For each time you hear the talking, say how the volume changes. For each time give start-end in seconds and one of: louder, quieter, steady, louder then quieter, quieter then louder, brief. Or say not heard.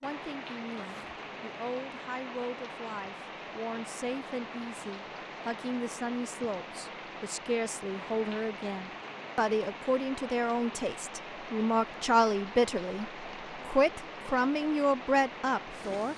0.0-16.1 louder.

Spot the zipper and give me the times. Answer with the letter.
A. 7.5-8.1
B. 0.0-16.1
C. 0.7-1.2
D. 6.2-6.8
C.